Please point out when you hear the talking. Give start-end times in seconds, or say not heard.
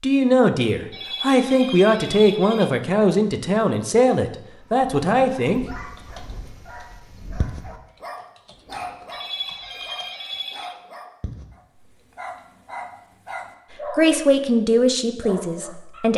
0.0-5.7, 13.9-16.1.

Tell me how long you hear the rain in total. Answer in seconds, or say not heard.
not heard.